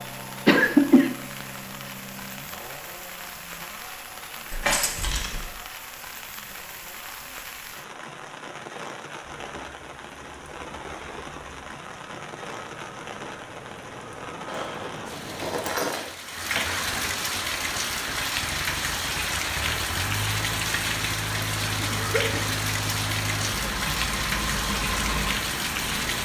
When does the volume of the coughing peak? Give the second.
1 s.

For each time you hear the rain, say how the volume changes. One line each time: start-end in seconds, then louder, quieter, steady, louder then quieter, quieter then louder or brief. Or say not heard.
0.0-26.2 louder.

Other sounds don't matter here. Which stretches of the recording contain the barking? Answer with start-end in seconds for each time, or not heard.
not heard.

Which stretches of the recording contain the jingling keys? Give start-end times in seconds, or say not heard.
4.5-5.5, 14.4-16.1.